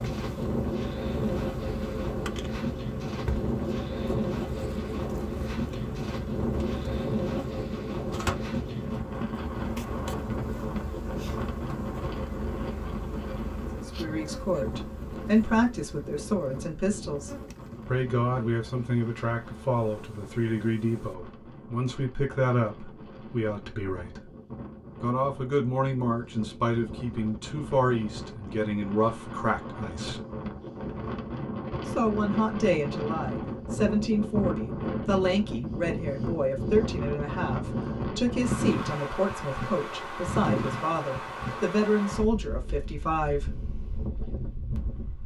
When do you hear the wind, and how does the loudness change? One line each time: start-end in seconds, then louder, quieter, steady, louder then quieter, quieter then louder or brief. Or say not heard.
0.0-45.2 quieter then louder.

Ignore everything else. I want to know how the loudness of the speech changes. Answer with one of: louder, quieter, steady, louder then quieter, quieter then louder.
steady.